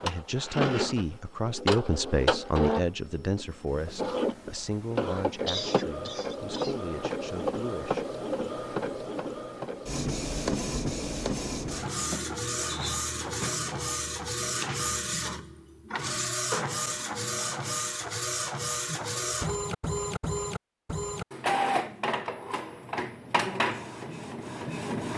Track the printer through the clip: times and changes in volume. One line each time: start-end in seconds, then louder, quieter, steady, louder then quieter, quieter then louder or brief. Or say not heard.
0.0-25.1 steady.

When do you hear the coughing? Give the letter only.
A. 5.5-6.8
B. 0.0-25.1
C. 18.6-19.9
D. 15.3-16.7
A.